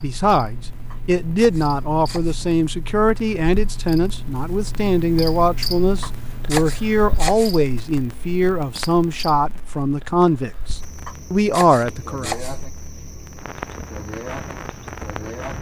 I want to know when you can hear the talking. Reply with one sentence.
The talking can be heard from 0.0 to 12.3 s.